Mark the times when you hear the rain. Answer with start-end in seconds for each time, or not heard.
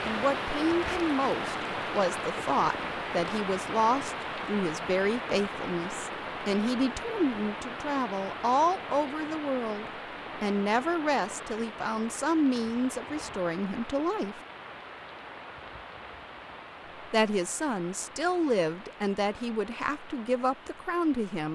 0.0-21.4.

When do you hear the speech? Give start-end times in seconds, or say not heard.
0.0-14.4, 17.1-21.4.